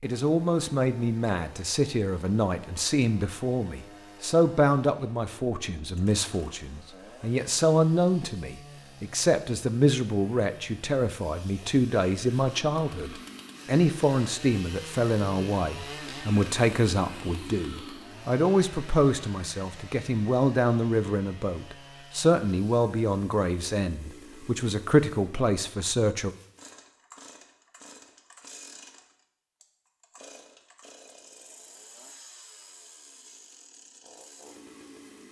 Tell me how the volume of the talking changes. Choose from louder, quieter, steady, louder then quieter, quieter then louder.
steady.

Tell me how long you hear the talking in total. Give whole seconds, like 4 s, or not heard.
26 s.